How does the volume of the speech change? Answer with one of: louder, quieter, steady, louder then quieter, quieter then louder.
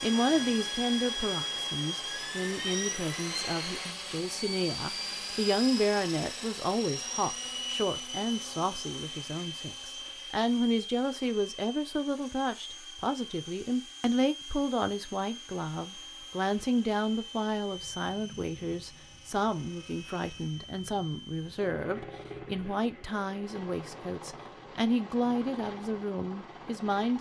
steady.